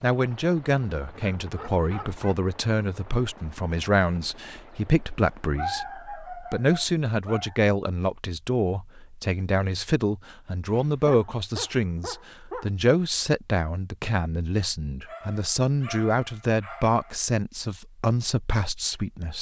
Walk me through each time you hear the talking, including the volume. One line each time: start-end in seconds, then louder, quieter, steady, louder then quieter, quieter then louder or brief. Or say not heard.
0.0-19.3 steady.